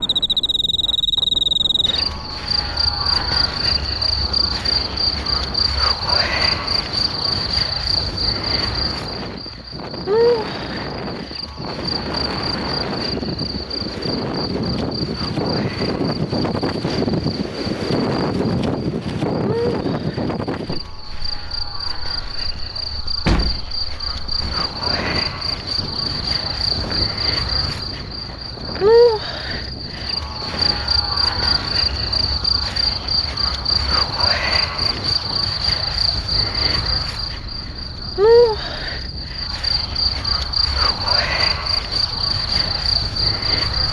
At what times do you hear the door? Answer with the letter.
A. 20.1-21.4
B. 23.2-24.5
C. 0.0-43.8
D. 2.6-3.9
B.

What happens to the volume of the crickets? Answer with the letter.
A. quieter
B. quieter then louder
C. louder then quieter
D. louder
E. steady
B.